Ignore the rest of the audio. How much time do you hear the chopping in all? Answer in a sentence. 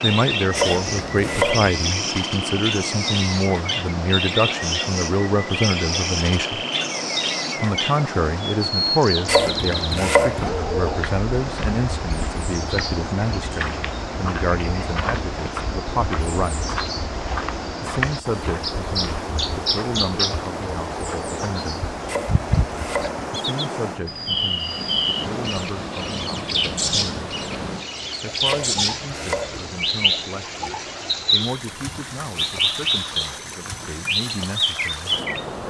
The chopping can be heard for 5 seconds in total.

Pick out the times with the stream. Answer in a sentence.
The stream can be heard from 0.0 to 35.6 s.